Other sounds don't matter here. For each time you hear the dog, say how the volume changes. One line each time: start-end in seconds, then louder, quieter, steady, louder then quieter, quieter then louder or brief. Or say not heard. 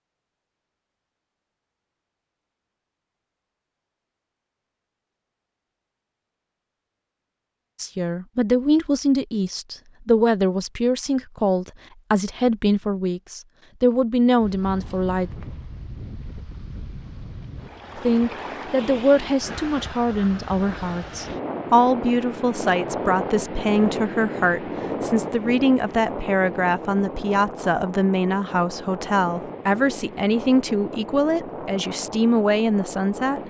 not heard.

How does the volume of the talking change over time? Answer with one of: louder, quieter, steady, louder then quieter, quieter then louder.
steady.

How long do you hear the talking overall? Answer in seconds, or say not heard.
23 s.